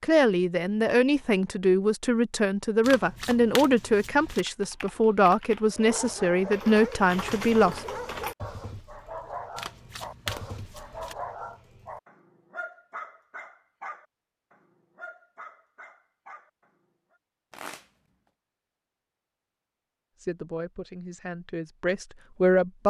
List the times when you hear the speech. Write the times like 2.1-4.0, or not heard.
0.0-7.8, 20.2-22.8.